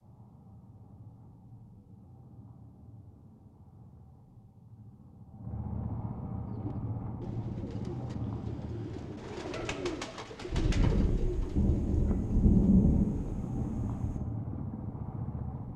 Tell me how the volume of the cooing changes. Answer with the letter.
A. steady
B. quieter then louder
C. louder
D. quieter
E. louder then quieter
E.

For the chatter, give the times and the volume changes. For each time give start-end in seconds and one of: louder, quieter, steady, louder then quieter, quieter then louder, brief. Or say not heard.
not heard.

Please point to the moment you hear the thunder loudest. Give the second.
13 s.